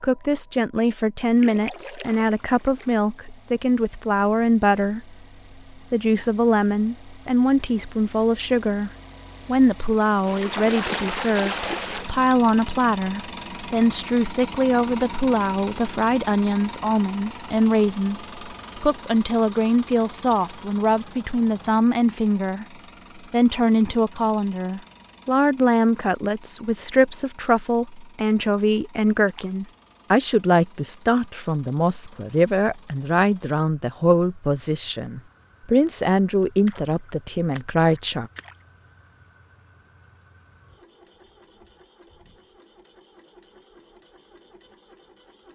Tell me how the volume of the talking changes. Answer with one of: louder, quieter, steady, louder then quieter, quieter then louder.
steady.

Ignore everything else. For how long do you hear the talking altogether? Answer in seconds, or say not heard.
37 s.